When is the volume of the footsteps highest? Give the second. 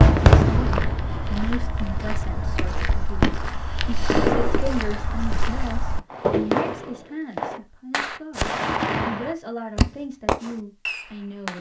6 s.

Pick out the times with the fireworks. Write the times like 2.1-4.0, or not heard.
0.0-4.7, 6.1-11.5.